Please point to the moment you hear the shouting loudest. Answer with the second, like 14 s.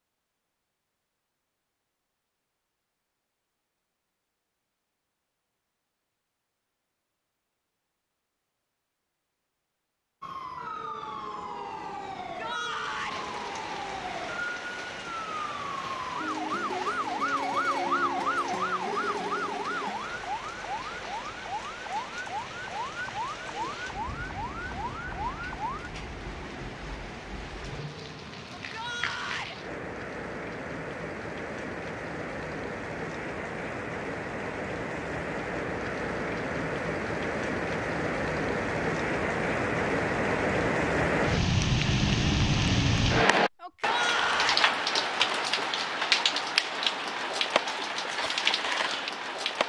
44 s.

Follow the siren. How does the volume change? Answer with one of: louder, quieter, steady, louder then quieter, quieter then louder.
louder then quieter.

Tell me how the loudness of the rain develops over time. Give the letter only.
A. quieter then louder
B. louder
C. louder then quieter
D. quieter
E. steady
B.